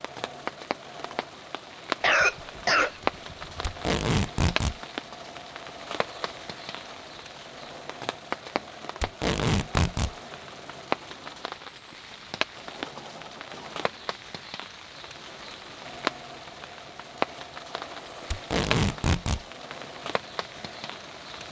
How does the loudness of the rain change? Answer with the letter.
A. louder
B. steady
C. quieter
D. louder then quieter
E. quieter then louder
B.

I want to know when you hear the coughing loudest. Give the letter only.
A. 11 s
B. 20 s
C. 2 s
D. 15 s
C.